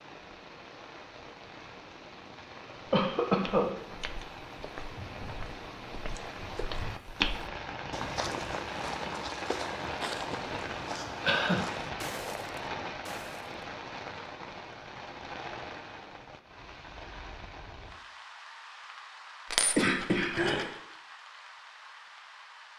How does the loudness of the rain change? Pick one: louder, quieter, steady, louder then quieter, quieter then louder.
louder then quieter.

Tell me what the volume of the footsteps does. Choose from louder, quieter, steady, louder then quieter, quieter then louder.
louder then quieter.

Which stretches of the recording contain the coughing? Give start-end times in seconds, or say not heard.
2.9-3.7, 10.8-12.1, 19.8-20.7.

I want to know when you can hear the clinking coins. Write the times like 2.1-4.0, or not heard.
19.5-20.8.